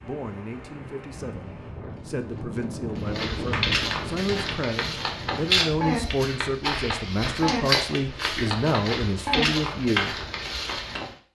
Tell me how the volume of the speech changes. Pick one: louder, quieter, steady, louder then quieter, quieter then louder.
louder.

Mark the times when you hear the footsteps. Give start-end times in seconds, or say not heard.
3.0-11.2.